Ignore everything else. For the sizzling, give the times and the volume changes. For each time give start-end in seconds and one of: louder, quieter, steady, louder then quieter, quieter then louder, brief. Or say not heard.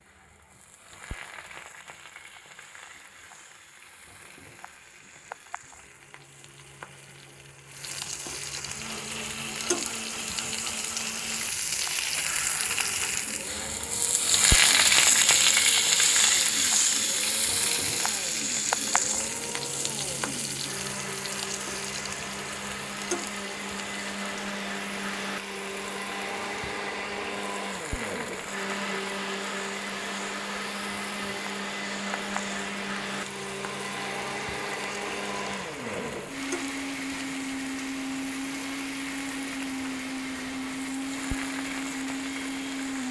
0.0-43.0 louder then quieter.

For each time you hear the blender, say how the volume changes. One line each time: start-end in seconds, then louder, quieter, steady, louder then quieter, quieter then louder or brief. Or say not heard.
8.6-43.0 louder.